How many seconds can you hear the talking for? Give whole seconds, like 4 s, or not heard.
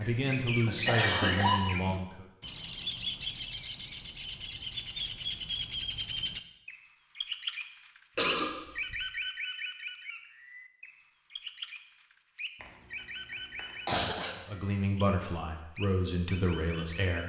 5 s.